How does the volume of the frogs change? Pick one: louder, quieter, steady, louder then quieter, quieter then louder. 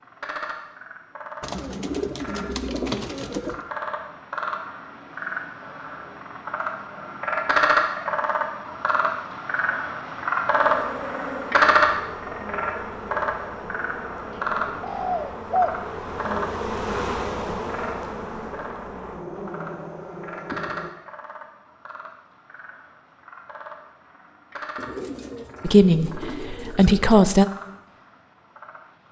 louder then quieter.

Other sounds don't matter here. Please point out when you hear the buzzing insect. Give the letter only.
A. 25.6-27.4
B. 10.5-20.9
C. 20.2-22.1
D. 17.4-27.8
B.